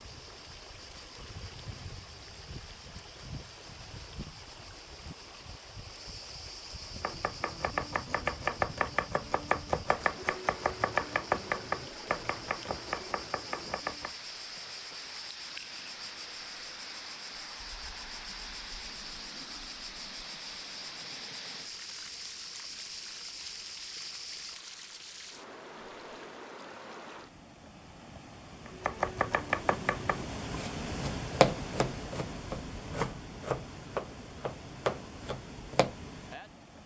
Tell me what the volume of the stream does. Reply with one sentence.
The loudness of the stream goes up.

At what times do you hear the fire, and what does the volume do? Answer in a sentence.
The fire can't be heard in this clip.